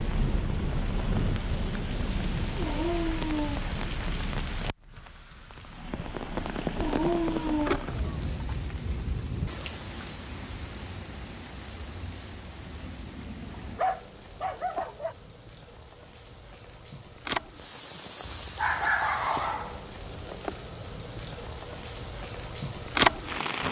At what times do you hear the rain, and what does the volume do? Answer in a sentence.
You can hear the rain from 0.0 to 23.6 s, getting quieter then louder.